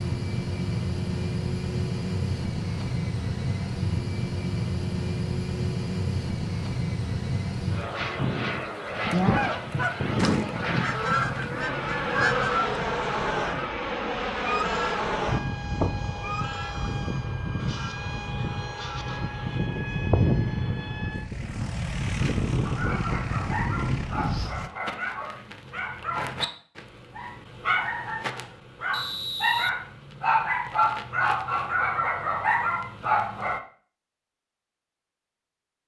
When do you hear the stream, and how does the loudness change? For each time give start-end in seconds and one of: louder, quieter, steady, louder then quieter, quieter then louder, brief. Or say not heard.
not heard.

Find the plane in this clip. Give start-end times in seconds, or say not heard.
0.0-24.7.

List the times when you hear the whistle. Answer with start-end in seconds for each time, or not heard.
28.9-29.7.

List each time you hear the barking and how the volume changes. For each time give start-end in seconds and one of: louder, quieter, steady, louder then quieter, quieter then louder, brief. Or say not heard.
22.6-33.6 louder.